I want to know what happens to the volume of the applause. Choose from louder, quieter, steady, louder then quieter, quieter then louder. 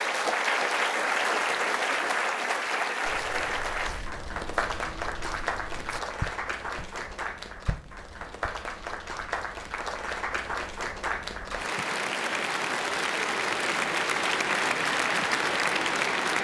quieter then louder.